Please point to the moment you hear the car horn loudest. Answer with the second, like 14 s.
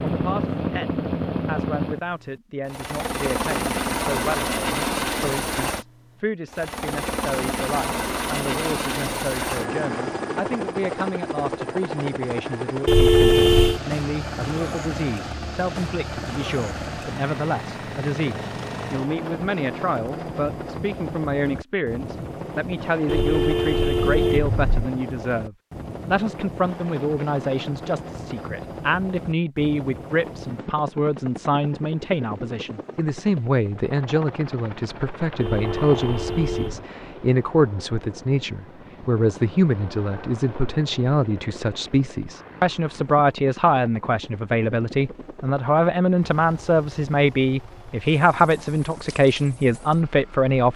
13 s.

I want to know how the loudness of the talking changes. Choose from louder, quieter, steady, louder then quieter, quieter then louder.
louder.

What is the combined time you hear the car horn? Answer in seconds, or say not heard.
4 s.